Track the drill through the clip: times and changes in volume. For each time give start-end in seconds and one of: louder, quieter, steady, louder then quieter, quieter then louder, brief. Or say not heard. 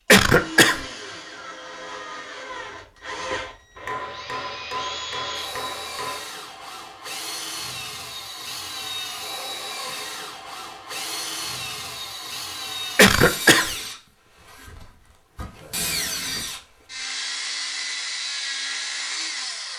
0.1-19.7 louder.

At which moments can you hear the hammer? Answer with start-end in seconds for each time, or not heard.
3.8-6.2.